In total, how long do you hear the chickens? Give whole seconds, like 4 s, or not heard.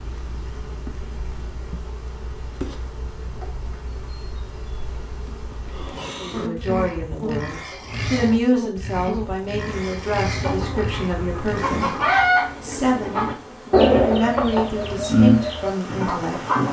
6 s.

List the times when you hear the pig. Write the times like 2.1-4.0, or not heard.
5.7-12.1.